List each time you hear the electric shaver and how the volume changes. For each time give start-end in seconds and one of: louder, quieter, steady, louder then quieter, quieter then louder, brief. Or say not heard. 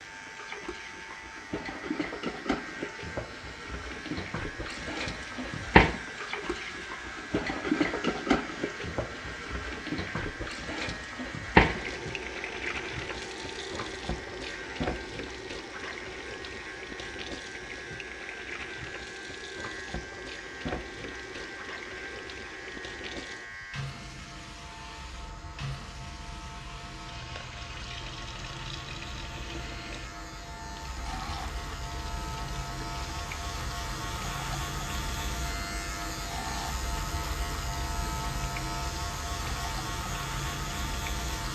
0.0-41.5 louder.